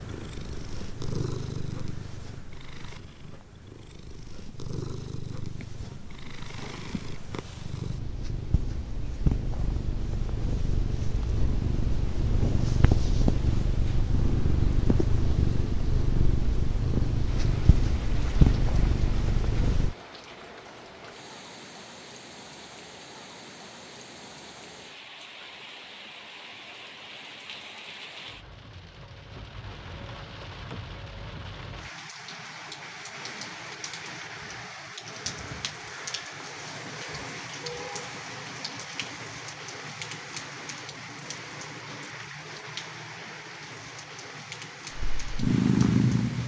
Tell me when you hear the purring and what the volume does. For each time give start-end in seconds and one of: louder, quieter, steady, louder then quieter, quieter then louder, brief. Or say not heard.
0.0-19.9 louder
45.0-46.4 brief.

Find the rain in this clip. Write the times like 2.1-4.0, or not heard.
17.2-46.4.